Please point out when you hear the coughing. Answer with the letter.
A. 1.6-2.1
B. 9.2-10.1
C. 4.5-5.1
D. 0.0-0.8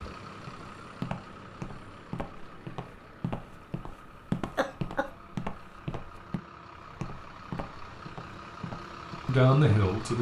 C.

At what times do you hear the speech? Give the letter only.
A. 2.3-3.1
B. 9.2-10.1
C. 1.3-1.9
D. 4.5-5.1
B.